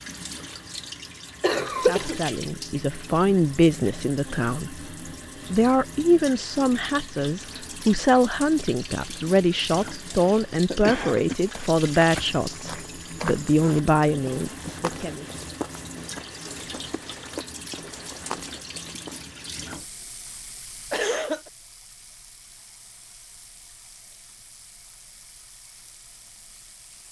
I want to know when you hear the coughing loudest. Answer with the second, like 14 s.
2 s.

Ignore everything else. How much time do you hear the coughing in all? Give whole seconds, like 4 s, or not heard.
3 s.